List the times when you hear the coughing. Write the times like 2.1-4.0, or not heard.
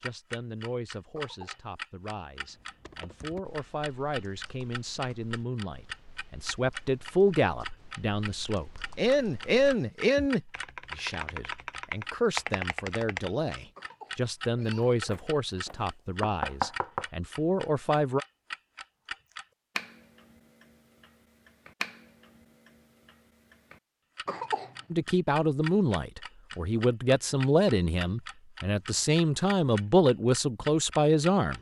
1.1-1.6, 13.8-15.0, 24.2-24.8.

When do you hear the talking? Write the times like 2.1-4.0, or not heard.
0.0-18.2, 24.9-31.5.